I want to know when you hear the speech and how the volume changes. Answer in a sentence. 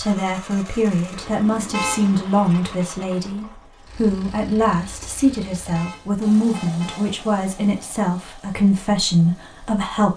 You can hear the speech from 0.0 to 10.1 s, at a steady volume.